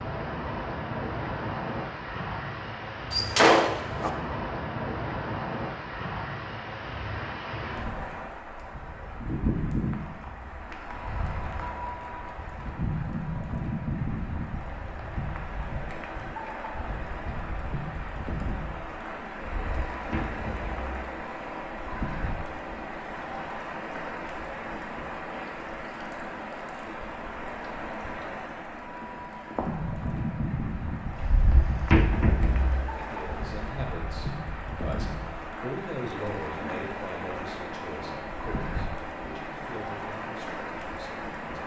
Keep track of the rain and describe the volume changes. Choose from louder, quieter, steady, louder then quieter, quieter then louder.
steady.